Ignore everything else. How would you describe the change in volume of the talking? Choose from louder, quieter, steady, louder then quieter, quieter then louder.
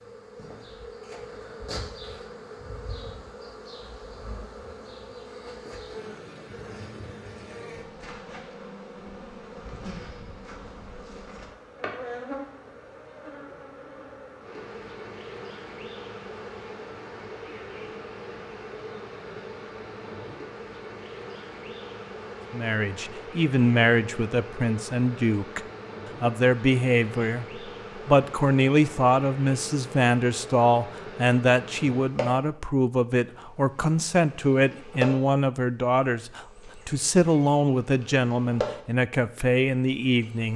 steady.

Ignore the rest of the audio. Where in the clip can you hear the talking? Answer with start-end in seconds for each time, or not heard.
22.5-40.5.